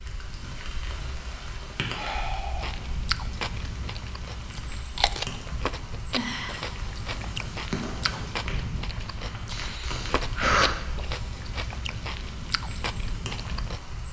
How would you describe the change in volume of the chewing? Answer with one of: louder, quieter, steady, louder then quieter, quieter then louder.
steady.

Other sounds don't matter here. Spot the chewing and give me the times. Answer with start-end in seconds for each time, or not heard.
2.5-13.8.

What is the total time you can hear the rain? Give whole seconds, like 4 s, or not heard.
14 s.